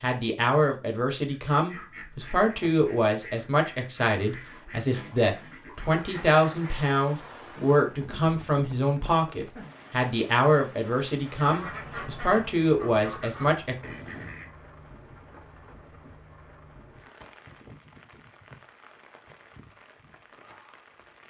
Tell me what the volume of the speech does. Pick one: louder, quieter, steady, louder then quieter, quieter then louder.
steady.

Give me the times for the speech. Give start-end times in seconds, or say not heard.
0.0-13.8.